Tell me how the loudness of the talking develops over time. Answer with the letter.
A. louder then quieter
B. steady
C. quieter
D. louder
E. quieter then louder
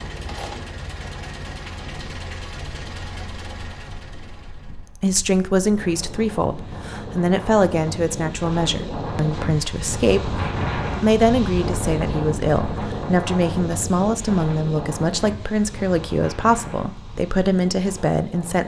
B.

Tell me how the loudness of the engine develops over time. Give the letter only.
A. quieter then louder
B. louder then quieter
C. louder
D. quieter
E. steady
D.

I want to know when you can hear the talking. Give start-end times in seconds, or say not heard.
5.0-10.2, 11.0-18.6.